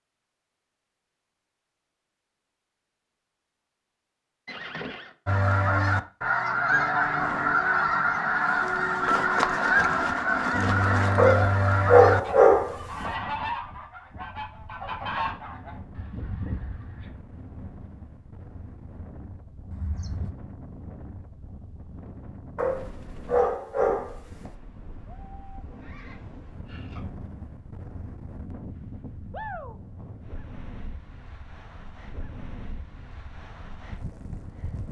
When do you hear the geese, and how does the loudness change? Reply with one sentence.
You can hear the geese from 5.2 to 17.1 s, getting quieter.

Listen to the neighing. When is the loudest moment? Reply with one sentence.
The volume of the neighing peaks at 5 seconds.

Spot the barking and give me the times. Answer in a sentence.
The barking can be heard from 11.2 to 13.1 s and from 22.6 to 24.5 s.